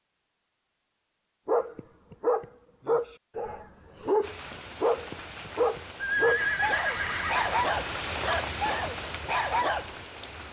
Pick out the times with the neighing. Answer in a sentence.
The neighing can be heard from 6.0 to 7.5 s.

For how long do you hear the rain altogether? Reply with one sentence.
The rain can be heard for 6 seconds in total.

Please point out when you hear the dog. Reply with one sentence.
The dog can be heard from 1.4 to 9.9 s.